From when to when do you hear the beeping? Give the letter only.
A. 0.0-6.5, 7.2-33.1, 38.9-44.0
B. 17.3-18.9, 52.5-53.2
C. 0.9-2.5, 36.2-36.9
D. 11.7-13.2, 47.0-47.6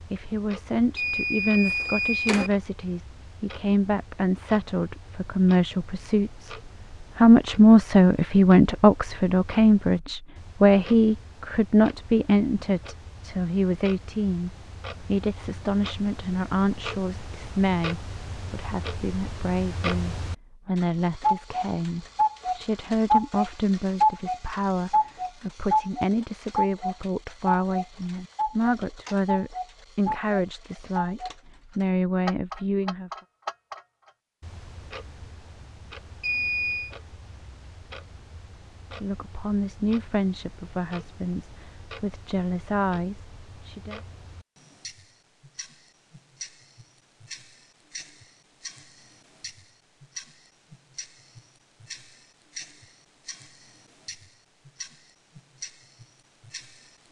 C.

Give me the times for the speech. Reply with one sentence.
You can hear the speech from 0.0 to 6.5 s, from 7.2 to 33.1 s and from 38.9 to 44.0 s.